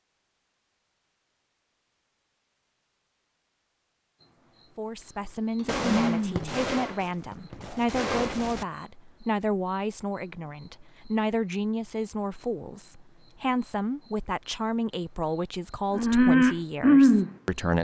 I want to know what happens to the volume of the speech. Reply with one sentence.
The loudness of the speech stays about the same.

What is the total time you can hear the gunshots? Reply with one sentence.
You can hear the gunshots for 3 seconds altogether.